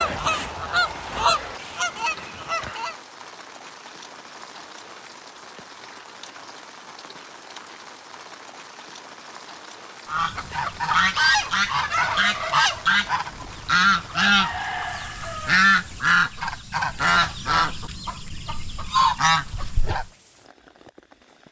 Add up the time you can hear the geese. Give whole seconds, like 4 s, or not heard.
13 s.